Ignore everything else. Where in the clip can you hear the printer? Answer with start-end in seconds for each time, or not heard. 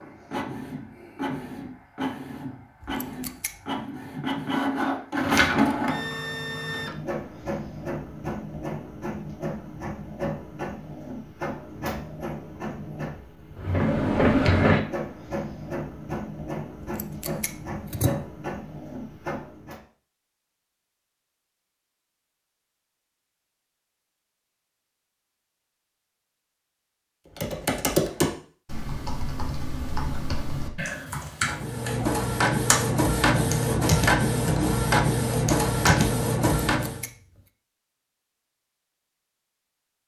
0.0-19.8, 31.4-37.0.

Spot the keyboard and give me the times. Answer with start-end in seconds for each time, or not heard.
27.4-36.9.